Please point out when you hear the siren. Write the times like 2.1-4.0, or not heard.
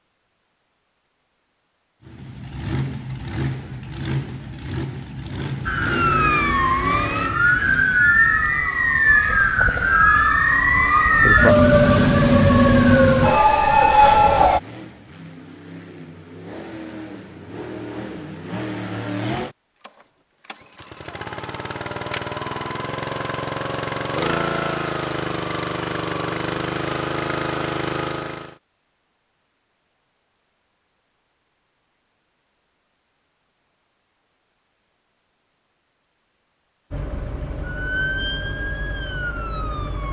5.7-14.6, 36.9-40.0.